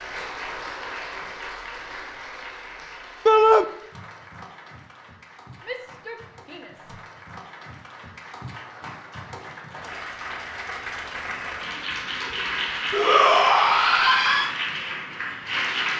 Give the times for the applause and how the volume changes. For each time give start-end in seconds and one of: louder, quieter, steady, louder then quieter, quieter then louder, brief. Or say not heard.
0.0-15.9 quieter then louder.